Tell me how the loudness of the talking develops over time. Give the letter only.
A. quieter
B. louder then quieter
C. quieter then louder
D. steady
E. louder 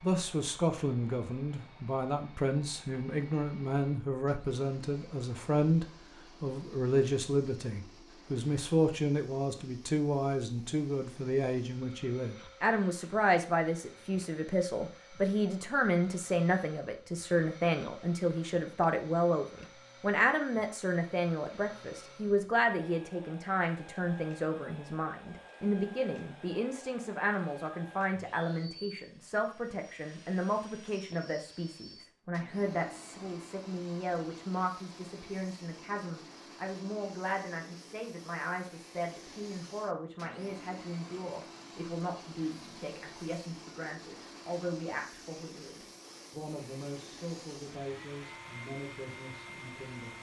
A.